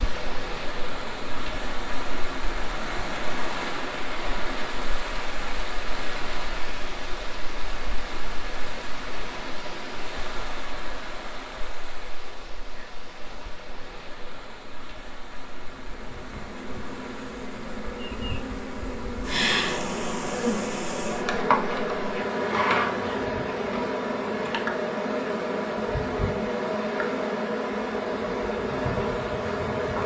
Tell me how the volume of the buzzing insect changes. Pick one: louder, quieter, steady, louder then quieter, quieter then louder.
louder.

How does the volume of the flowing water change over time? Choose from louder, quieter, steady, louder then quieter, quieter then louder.
quieter.